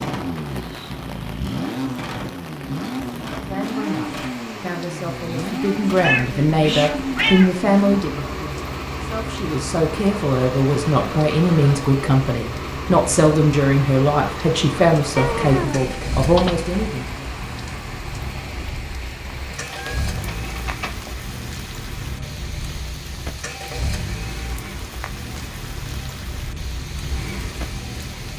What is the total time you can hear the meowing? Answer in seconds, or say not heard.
5 s.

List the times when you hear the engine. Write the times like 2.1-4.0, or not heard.
0.0-28.3.